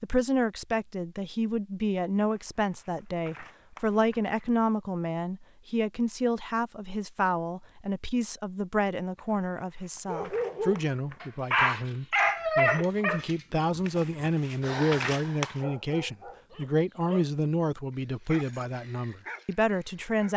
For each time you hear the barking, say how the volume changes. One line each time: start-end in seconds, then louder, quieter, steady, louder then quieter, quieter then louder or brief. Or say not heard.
10.1-20.3 quieter.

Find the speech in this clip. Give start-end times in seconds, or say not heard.
0.0-20.3.